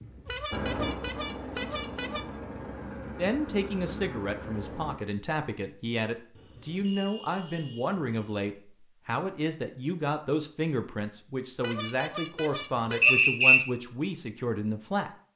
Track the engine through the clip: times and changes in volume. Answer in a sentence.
You can hear the engine from 0.0 to 5.0 s, getting quieter.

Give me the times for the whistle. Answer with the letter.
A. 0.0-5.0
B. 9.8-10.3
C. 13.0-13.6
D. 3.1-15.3
C.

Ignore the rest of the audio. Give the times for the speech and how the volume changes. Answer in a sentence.
The speech can be heard from 3.1 to 15.3 s, at a steady volume.